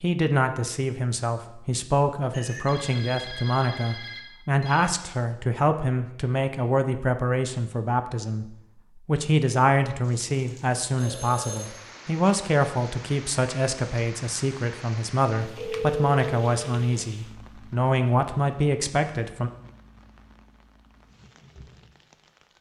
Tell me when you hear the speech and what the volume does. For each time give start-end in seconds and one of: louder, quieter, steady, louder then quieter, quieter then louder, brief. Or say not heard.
0.0-19.5 steady.